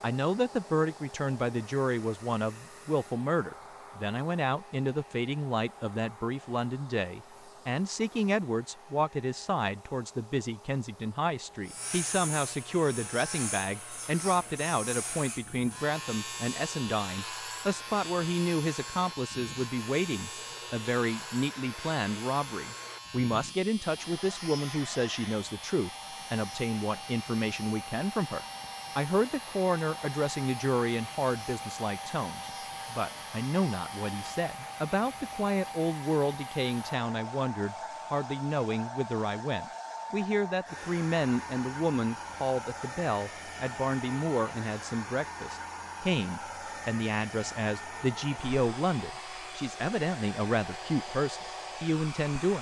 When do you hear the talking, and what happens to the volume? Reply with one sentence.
The talking can be heard from 0.0 to 52.5 s, at a steady volume.